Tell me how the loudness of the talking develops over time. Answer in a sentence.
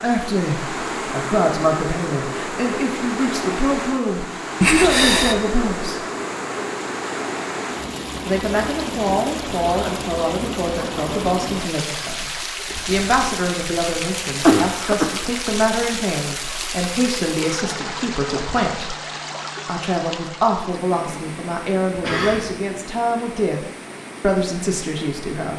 The volume of the talking stays about the same.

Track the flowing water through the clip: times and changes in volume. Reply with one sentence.
The flowing water can be heard from 0.0 to 25.5 s, getting quieter.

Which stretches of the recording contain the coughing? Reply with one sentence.
You can hear the coughing from 4.6 to 5.5 s, from 12.7 to 15.3 s and from 21.9 to 22.6 s.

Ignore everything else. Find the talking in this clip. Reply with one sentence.
The talking can be heard from 0.0 to 6.0 s, from 8.2 to 18.9 s and from 19.6 to 25.5 s.